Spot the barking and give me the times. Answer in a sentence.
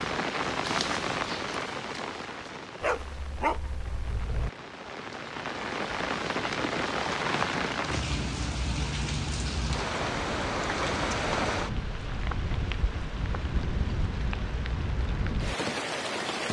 The barking can be heard from 2.8 to 4.5 s.